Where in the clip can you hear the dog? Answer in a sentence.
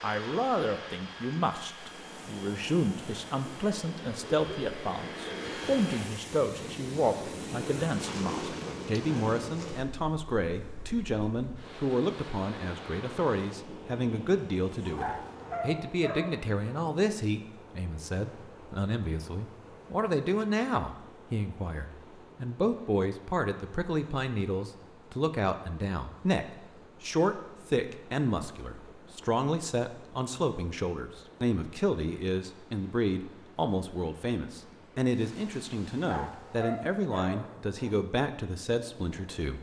The dog can be heard from 14.9 to 16.6 s and from 36.0 to 38.0 s.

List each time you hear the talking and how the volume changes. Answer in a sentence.
The talking can be heard from 0.0 to 39.5 s, at a steady volume.